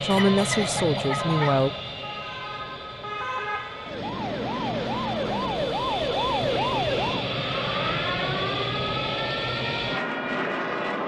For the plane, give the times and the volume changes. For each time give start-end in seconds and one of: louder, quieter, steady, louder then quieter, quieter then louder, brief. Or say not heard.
0.0-11.0 quieter then louder.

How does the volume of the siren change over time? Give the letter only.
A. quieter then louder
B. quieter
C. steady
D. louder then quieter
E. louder
D.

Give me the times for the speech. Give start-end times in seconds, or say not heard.
0.0-1.7.